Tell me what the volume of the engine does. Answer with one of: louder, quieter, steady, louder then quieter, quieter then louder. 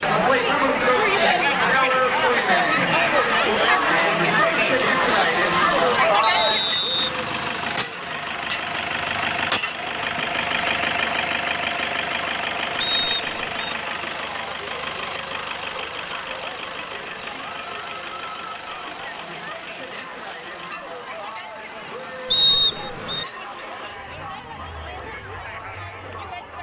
louder then quieter.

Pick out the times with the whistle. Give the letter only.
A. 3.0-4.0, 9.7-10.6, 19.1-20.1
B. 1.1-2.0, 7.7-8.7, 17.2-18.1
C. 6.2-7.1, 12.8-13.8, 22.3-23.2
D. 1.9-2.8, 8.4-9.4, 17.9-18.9
C.